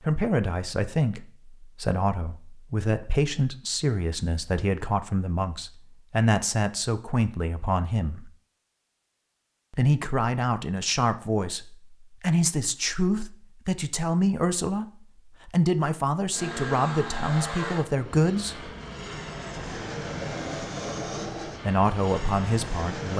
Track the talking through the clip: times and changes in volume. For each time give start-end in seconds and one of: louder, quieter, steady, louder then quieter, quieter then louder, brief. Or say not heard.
0.0-8.3 steady
9.7-18.6 steady
21.6-23.1 brief.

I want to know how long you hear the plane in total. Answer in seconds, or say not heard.
7 s.